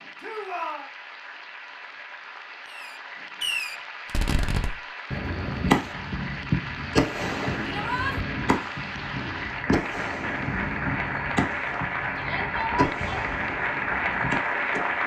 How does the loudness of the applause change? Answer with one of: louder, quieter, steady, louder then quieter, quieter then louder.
louder.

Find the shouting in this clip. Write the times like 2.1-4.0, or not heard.
0.2-0.9, 7.7-8.2, 12.2-13.3.